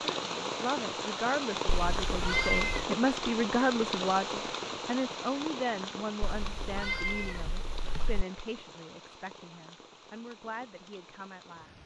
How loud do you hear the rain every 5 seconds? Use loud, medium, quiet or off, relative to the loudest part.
loud, medium, quiet.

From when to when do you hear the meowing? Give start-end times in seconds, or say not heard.
1.8-2.9, 6.2-8.2.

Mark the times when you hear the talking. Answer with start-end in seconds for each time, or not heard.
0.1-11.8.